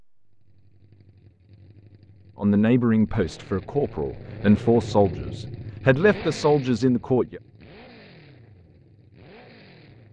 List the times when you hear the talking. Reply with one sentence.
You can hear the talking from 2.4 to 7.4 s.